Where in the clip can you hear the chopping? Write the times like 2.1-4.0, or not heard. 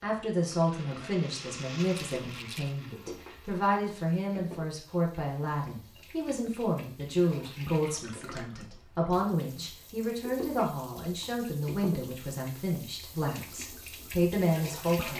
not heard.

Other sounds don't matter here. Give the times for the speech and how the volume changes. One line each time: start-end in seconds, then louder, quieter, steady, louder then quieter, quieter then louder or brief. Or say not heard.
0.0-15.1 steady.